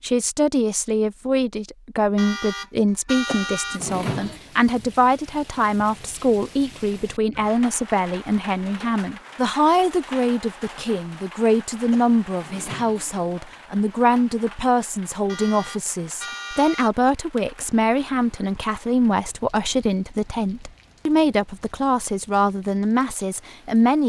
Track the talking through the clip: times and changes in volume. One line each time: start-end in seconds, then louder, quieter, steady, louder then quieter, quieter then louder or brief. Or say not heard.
0.0-24.0 steady.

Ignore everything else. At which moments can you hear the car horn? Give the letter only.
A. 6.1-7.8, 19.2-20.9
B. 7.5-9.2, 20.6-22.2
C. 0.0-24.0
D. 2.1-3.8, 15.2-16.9
D.